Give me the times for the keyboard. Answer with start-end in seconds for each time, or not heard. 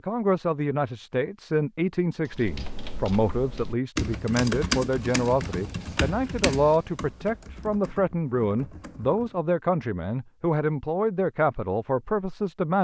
2.2-9.4.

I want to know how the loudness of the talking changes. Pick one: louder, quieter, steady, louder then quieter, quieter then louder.
steady.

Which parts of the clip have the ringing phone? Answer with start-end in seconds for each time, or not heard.
not heard.